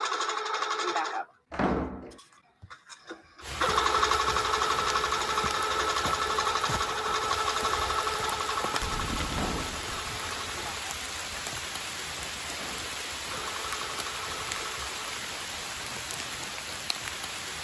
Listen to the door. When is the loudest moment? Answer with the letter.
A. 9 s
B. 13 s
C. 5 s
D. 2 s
D.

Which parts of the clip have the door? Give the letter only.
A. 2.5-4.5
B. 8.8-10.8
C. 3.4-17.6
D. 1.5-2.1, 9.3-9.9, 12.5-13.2
D.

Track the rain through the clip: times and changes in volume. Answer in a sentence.
The rain can be heard from 3.4 to 17.6 s, at a steady volume.